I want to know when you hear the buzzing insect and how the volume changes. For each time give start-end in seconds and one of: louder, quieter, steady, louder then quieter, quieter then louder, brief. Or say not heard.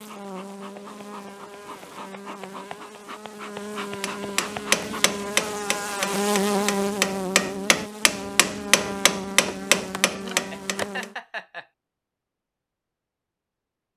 0.0-11.2 louder then quieter.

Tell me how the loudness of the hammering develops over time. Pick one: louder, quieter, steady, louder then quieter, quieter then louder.
quieter then louder.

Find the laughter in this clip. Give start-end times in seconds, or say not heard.
10.5-11.7.